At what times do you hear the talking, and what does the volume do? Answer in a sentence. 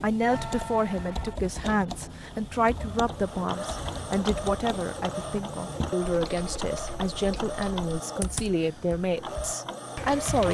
You can hear the talking from 0.0 to 10.4 s, at a steady volume.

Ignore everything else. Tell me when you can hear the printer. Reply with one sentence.
You can hear the printer from 0.1 to 10.4 s.